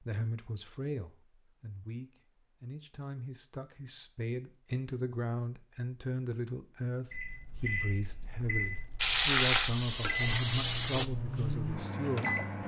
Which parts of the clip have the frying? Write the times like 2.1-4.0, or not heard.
9.0-11.1.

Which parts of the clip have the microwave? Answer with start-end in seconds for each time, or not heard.
7.1-12.6.